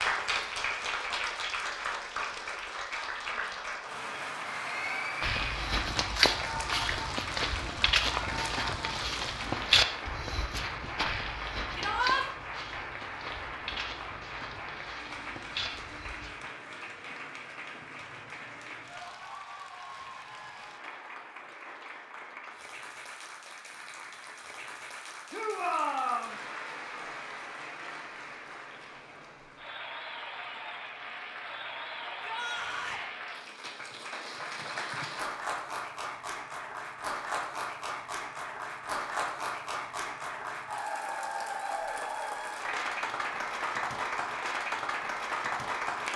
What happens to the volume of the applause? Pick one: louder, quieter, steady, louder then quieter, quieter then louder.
quieter then louder.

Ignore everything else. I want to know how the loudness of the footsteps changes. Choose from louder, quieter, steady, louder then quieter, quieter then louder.
quieter.